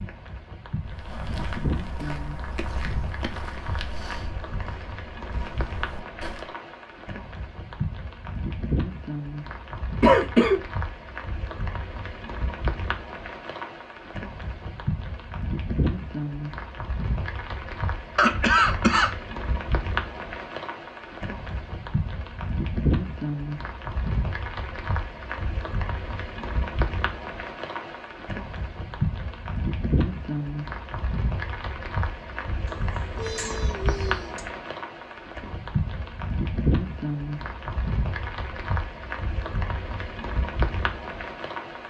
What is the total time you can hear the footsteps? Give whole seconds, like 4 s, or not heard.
6 s.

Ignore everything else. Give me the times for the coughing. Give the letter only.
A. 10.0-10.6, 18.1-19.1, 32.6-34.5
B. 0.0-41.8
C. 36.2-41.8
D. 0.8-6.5
A.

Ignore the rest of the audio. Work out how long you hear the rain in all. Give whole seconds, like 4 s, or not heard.
42 s.